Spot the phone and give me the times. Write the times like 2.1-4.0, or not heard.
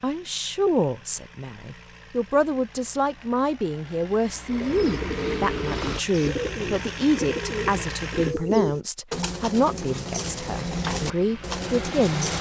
not heard.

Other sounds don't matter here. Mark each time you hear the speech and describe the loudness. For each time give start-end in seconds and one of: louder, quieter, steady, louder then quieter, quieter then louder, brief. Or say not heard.
0.0-12.3 steady.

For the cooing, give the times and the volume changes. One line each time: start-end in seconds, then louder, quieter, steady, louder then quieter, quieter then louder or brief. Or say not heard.
4.5-12.3 steady.